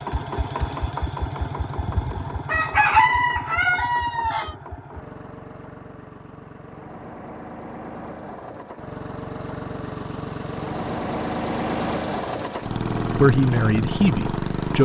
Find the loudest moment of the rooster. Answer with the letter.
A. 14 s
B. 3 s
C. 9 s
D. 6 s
B.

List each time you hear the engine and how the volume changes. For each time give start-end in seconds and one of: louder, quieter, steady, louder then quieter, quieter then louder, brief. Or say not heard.
0.0-14.8 quieter then louder.